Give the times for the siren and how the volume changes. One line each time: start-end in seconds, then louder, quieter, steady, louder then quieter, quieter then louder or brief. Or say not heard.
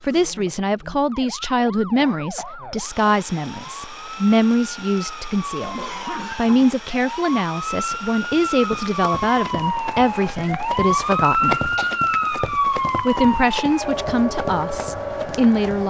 0.0-15.8 louder.